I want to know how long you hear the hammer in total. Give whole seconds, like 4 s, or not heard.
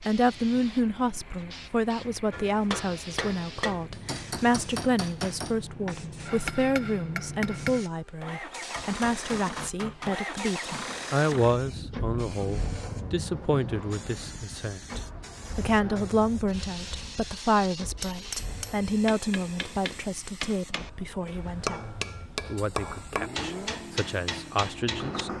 15 s.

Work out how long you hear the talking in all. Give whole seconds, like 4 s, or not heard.
25 s.